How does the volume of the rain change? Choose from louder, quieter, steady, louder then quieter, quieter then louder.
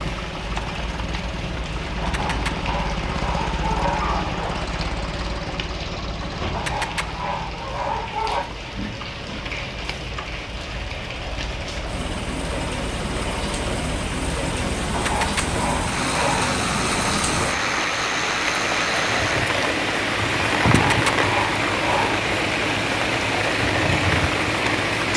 louder.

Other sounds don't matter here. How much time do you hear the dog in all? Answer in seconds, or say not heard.
8 s.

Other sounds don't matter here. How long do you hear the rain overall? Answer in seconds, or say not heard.
25 s.